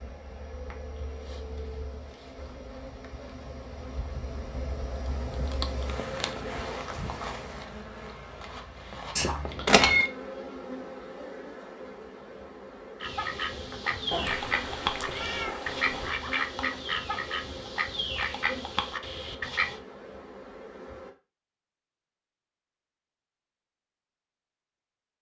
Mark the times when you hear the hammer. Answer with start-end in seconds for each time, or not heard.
not heard.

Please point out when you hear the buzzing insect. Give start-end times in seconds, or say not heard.
0.0-21.1.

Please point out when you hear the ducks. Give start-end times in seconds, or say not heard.
13.0-19.8.